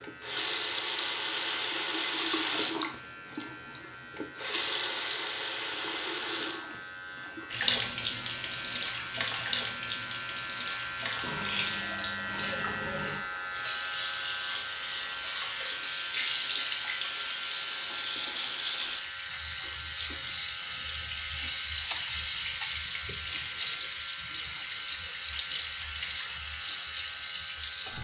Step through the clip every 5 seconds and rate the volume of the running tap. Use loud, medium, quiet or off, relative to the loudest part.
loud, medium, medium, medium, loud, loud.